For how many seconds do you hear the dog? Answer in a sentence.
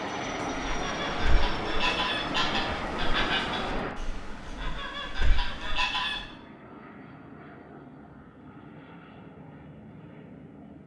You can't hear the dog here.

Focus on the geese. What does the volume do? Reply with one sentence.
The loudness of the geese goes down, then up.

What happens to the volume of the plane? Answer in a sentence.
The loudness of the plane goes down.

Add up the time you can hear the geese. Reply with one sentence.
You can hear the geese for 6 seconds altogether.